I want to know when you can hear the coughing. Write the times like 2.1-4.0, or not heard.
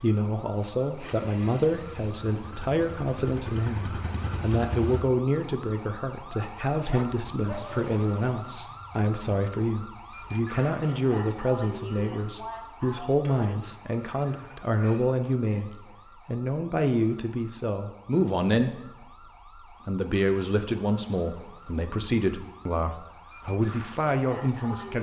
not heard.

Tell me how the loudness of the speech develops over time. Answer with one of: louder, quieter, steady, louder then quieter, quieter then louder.
steady.